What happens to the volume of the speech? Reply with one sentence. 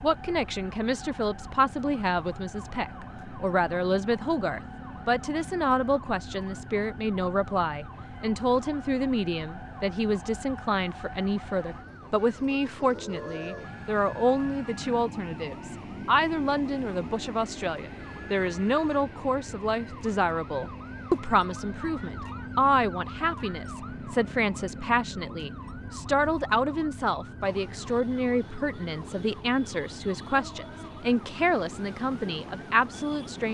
The loudness of the speech stays about the same.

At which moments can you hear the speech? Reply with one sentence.
The speech can be heard from 0.0 to 33.4 s.